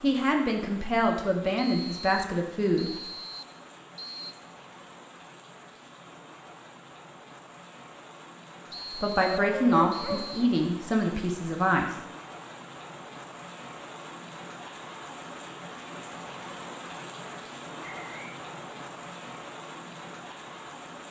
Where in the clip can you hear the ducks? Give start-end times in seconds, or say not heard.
not heard.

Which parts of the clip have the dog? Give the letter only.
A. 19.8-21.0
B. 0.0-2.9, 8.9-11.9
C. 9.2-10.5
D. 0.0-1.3
C.